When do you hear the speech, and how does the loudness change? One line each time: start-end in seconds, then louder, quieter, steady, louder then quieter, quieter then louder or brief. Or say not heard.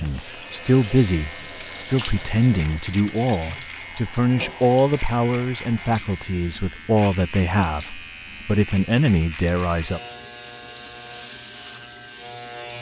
0.0-10.0 steady.